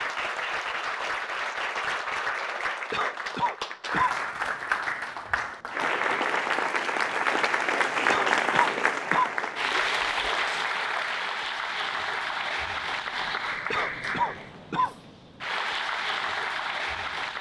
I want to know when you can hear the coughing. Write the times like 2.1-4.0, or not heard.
2.9-4.2, 8.1-9.3, 13.7-14.9.